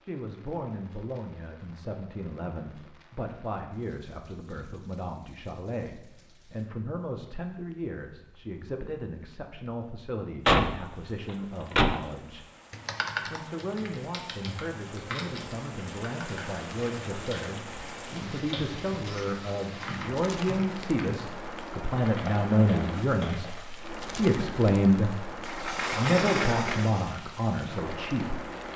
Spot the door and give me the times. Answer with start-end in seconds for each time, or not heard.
10.4-12.1, 25.4-27.1.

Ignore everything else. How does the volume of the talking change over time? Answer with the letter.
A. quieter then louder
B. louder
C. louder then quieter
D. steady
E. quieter
B.